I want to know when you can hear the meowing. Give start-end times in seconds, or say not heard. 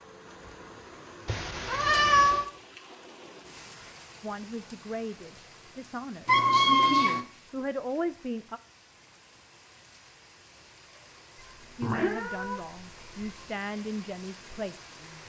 1.2-2.5, 6.2-7.2, 11.3-13.4.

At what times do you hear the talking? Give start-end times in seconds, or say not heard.
4.2-8.6, 11.8-15.2.